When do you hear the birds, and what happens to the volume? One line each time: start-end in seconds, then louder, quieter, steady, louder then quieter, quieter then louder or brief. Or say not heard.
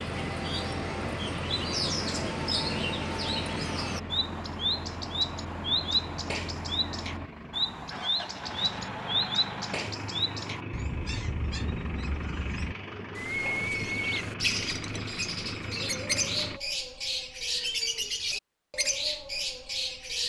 0.0-20.2 steady.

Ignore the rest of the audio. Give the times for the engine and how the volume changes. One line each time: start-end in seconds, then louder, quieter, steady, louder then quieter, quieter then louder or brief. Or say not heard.
0.0-16.6 steady.